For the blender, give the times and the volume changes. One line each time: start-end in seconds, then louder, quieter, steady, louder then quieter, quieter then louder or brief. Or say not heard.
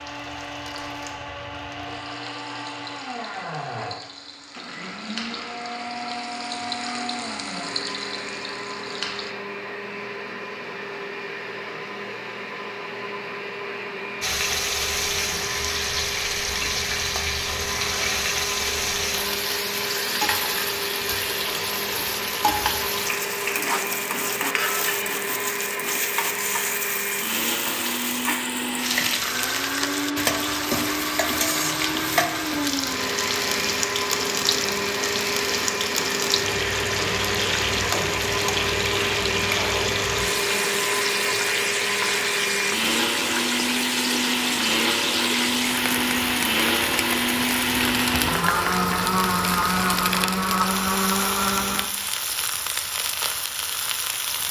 0.0-52.0 louder.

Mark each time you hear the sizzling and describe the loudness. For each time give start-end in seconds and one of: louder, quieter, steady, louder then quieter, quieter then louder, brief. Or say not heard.
0.0-9.3 louder
14.2-54.4 steady.